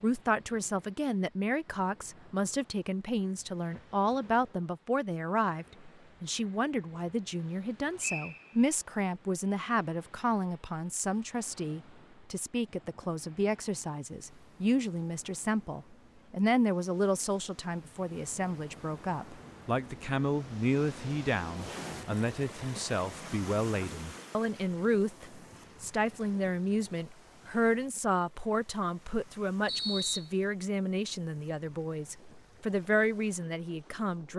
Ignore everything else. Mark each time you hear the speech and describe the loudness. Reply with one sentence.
You can hear the speech from 0.0 to 34.3 s, at a steady volume.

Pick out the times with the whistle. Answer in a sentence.
The whistle can be heard from 8.0 to 8.6 s and from 29.6 to 30.3 s.